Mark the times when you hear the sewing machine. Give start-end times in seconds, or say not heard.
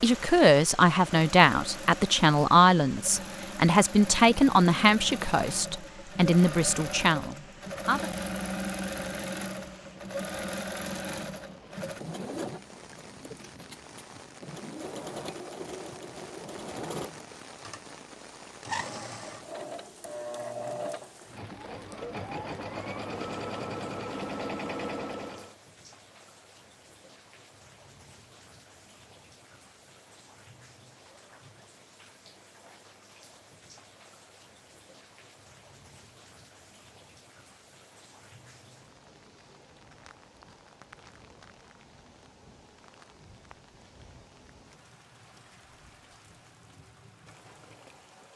0.0-25.6.